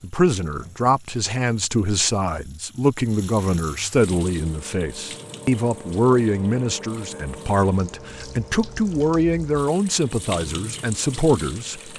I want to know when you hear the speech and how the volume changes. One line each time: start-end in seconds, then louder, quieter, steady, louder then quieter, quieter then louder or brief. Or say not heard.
0.0-11.9 steady.